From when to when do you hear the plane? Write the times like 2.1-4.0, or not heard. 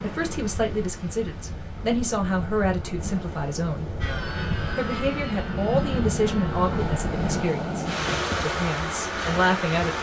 4.0-7.5.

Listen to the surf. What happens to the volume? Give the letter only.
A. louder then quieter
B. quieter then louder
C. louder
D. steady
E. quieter
C.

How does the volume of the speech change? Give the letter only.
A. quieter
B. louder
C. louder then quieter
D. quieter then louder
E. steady
E.